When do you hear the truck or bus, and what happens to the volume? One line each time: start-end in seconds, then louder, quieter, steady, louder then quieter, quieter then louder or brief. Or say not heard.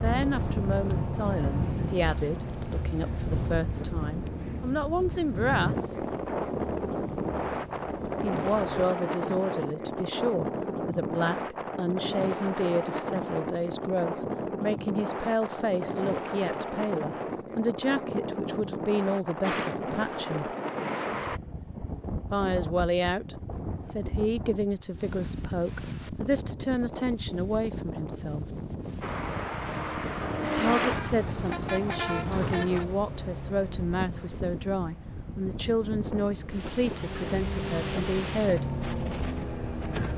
0.0-8.9 quieter
19.4-21.4 brief
29.0-40.1 quieter then louder.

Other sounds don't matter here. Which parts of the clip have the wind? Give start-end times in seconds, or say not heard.
0.0-40.1.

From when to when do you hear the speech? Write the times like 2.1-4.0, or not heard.
0.0-6.0, 8.2-20.5, 22.3-28.4, 30.6-38.8.